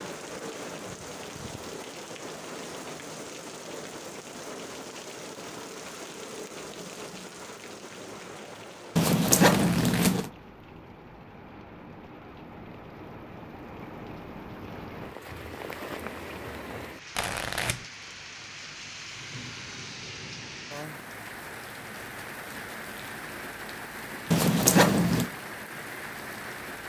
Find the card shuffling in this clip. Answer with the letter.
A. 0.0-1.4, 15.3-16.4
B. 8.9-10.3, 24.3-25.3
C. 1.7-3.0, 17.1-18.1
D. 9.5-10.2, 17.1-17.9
D.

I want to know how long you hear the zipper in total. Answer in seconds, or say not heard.
2 s.